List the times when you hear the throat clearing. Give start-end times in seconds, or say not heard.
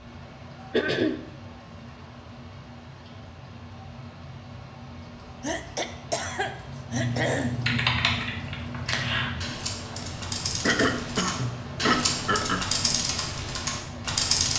0.7-1.2, 5.4-7.5, 10.6-12.7.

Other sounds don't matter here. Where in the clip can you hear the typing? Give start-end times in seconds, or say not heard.
6.9-14.5.